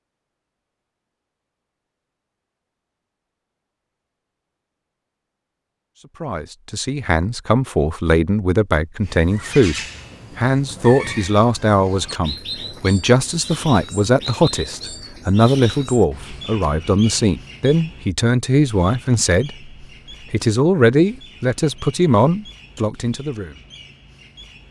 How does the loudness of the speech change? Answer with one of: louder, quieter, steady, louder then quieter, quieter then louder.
steady.